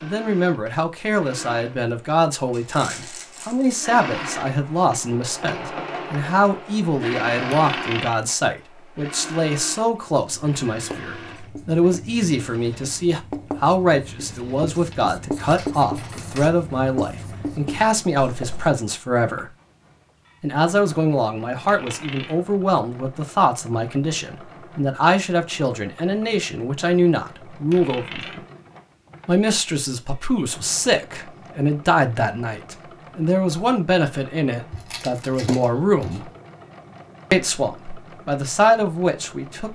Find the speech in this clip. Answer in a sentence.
You can hear the speech from 0.0 to 19.4 s, from 20.4 to 28.4 s, from 29.2 to 36.2 s and from 37.3 to 39.7 s.